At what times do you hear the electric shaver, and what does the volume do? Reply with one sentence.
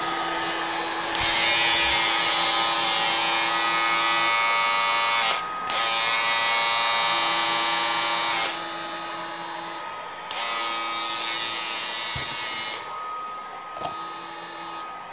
The electric shaver can be heard from 0.0 to 15.0 s, getting quieter.